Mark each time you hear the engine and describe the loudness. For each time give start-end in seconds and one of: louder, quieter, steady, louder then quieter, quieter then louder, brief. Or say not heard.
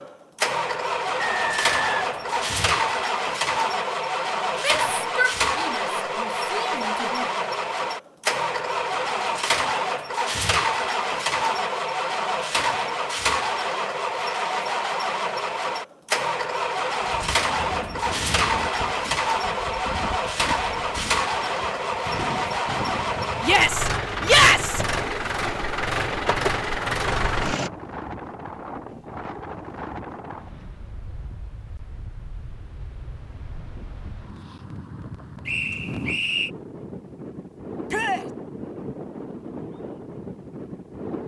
0.0-27.7 steady.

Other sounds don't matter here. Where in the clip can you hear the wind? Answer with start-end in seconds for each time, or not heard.
17.0-41.2.